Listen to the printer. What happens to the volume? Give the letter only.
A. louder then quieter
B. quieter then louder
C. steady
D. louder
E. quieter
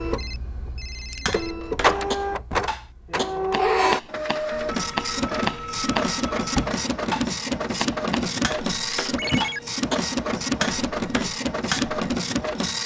C.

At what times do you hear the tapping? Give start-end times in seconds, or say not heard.
1.2-11.9.